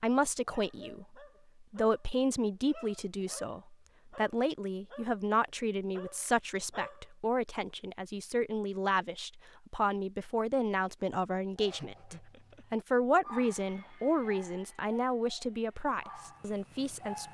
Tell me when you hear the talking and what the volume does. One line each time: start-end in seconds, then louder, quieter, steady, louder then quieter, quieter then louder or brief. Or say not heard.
0.0-17.3 steady.